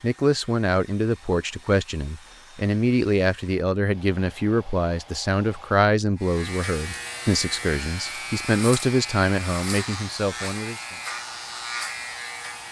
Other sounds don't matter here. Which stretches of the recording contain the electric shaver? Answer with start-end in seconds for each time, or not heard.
6.2-12.6.